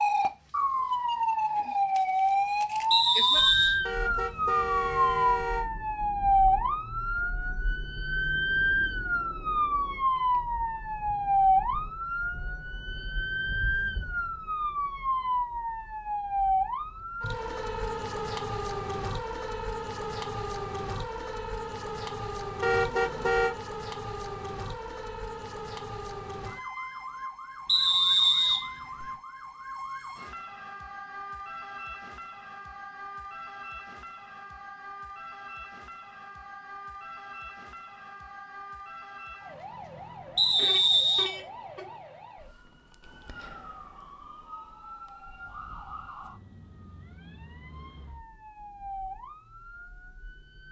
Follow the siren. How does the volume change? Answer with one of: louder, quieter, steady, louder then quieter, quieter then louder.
quieter.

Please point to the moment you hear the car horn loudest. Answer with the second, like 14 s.
23 s.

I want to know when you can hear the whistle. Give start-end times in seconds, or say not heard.
2.9-3.8, 27.6-29.1, 40.4-41.3.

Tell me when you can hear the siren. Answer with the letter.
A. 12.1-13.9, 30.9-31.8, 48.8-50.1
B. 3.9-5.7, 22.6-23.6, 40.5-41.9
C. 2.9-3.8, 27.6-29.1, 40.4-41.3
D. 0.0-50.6
D.